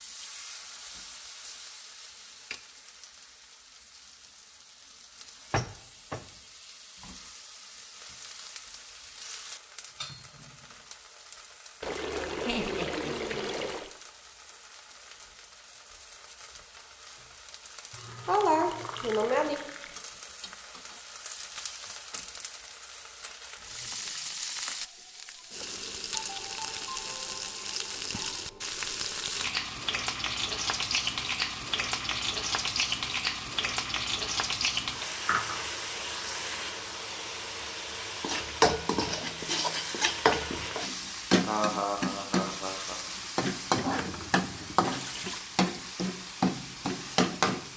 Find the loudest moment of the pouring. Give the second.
13 s.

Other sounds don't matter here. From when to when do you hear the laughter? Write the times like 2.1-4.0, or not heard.
12.4-13.6, 17.9-19.6, 41.4-43.0.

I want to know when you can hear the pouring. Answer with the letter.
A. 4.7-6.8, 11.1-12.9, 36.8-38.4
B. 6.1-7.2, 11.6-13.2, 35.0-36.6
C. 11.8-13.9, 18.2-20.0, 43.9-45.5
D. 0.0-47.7
C.